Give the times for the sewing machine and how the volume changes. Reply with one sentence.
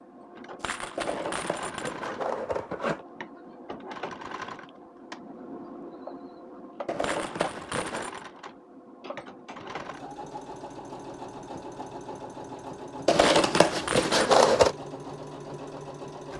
You can hear the sewing machine from 0.0 to 16.3 s, at a steady volume.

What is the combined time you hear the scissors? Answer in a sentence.
You can hear the scissors for 5 seconds altogether.